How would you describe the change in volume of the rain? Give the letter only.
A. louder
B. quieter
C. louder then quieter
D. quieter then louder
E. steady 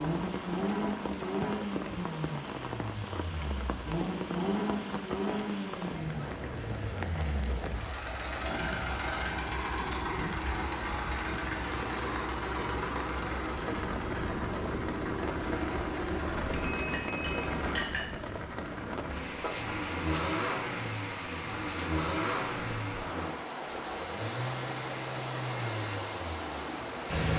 E.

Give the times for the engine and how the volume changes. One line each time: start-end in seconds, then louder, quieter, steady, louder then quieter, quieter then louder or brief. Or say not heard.
0.0-27.3 steady.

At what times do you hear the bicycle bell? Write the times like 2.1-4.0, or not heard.
16.5-17.5.